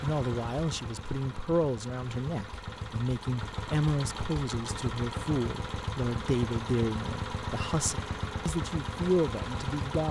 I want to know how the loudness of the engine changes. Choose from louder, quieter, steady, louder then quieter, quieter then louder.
louder.